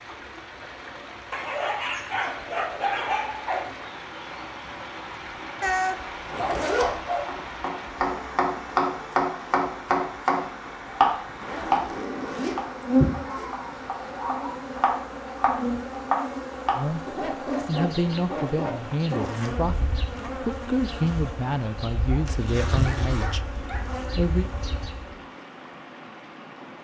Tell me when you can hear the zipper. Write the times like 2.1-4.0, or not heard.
6.3-6.9, 11.2-13.7, 22.2-23.3.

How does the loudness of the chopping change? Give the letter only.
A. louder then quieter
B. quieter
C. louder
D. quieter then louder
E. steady
D.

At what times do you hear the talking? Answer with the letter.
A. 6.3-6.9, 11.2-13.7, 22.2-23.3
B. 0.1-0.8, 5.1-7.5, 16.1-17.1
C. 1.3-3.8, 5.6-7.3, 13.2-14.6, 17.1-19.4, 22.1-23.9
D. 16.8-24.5
D.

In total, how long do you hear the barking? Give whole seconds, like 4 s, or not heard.
10 s.